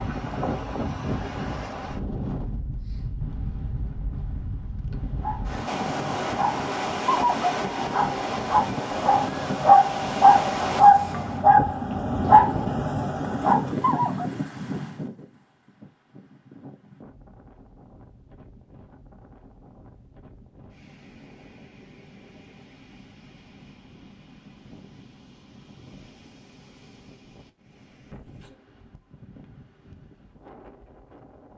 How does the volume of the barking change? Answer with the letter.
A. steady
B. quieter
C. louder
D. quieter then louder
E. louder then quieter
C.